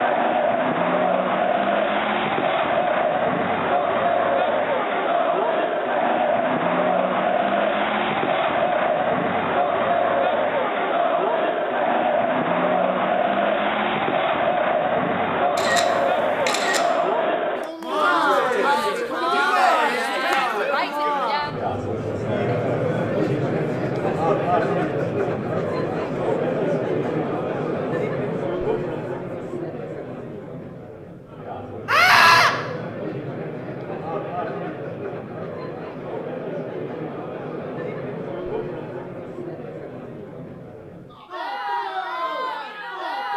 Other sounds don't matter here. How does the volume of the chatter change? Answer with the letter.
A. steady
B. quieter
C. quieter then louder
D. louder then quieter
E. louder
B.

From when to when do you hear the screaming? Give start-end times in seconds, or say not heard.
31.9-32.5.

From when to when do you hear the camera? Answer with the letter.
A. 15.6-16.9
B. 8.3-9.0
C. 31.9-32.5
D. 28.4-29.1
A.